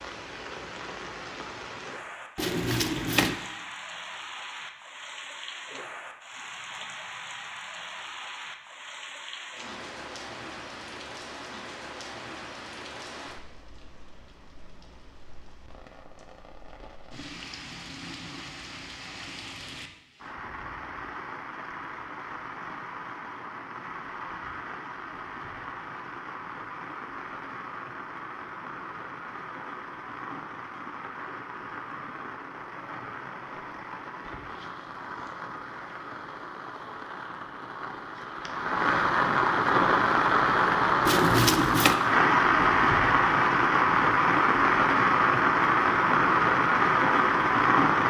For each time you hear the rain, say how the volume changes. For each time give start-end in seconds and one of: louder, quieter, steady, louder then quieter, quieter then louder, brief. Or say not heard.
0.0-48.0 louder.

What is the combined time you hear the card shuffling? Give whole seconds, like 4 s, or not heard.
2 s.